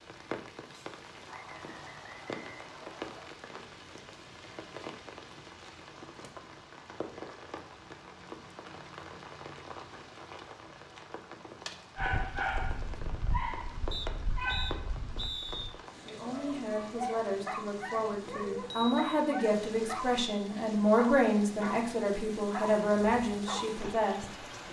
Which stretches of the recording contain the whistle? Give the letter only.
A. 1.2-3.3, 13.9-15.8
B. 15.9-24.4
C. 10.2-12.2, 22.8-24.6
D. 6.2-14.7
A.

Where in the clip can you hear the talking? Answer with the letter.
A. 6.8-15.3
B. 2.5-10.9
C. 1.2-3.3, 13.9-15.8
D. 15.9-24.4
D.